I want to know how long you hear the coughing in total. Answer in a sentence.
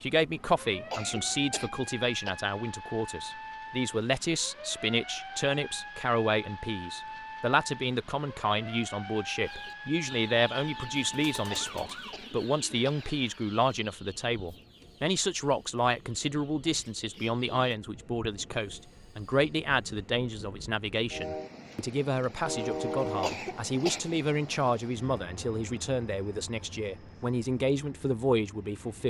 The coughing can be heard for 4 seconds in total.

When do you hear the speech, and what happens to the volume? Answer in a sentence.
The speech can be heard from 0.0 to 29.0 s, at a steady volume.